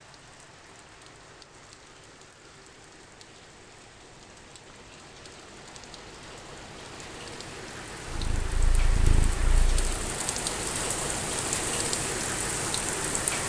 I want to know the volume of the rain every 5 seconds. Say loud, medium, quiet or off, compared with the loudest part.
quiet, medium, loud.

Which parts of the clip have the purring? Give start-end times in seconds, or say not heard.
8.1-9.9.